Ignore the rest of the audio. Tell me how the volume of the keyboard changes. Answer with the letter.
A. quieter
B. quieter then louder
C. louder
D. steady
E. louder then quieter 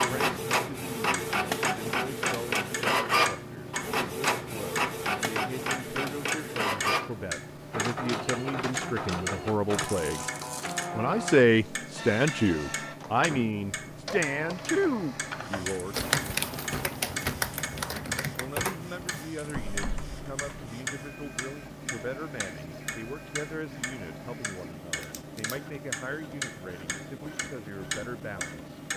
A.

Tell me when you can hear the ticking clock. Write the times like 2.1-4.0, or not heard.
0.0-28.9.